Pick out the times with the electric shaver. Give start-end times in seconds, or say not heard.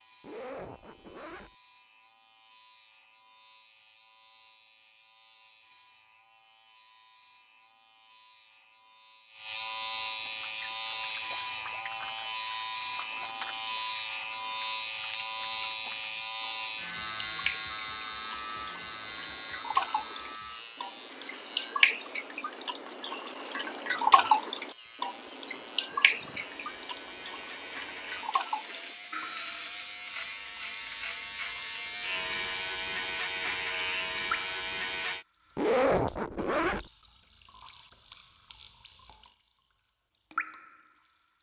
0.0-35.2.